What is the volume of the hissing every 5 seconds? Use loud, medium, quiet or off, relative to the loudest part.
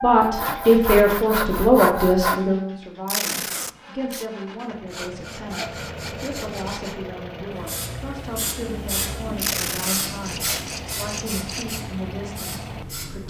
off, loud, loud.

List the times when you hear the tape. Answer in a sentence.
The tape can be heard from 3.0 to 4.2 s and from 9.3 to 10.7 s.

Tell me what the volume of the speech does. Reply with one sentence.
The loudness of the speech goes down.